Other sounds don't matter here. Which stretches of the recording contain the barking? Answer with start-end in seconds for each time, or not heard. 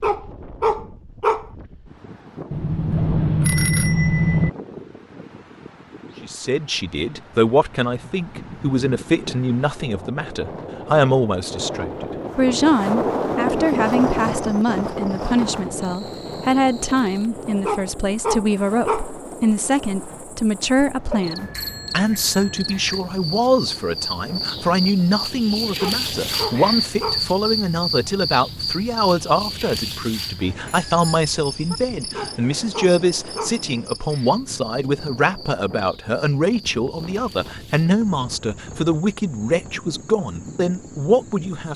0.0-1.4, 17.6-19.1, 25.8-27.2, 32.1-33.6.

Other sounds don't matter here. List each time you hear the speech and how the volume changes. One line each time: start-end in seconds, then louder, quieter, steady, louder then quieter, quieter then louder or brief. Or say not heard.
6.2-41.7 steady.